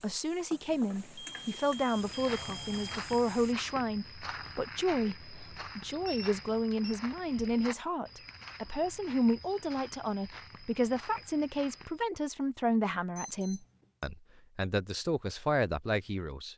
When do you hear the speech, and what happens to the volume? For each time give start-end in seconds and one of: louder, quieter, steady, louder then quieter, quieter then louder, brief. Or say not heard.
0.0-16.5 steady.